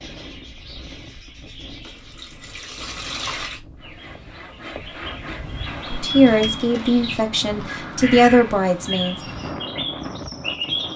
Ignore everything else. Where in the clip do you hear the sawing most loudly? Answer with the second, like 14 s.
5 s.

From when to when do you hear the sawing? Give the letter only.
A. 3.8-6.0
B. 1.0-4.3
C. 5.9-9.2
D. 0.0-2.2
A.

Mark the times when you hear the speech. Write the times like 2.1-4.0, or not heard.
5.9-9.2.